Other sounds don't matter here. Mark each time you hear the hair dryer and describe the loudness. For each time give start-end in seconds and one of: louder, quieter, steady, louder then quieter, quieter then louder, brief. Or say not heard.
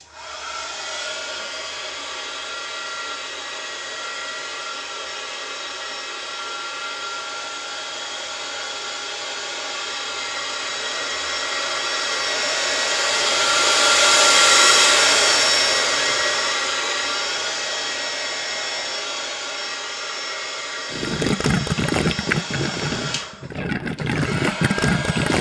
0.0-25.3 louder then quieter.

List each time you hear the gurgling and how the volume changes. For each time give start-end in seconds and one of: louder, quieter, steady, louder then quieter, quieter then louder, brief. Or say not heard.
20.9-25.3 quieter then louder.